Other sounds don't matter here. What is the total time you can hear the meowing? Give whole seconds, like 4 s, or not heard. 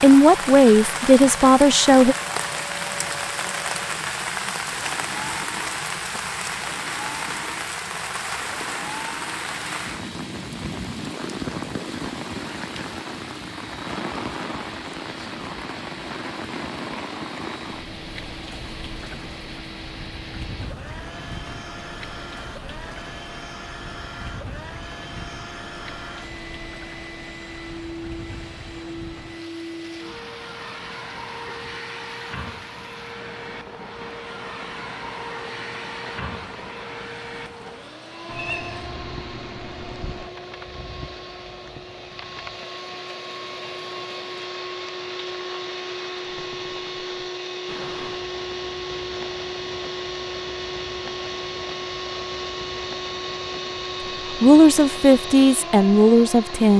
2 s.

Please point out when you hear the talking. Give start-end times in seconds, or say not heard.
0.0-2.1, 54.4-56.7.